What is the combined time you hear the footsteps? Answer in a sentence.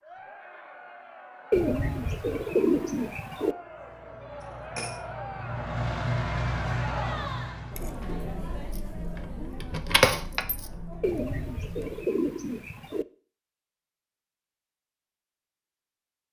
You can't hear the footsteps here.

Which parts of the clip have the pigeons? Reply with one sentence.
You can hear the pigeons from 1.5 to 3.5 s and from 11.0 to 13.1 s.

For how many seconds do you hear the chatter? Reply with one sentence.
You can hear the chatter for 12 seconds altogether.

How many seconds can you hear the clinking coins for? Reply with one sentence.
You can hear the clinking coins for 2 seconds altogether.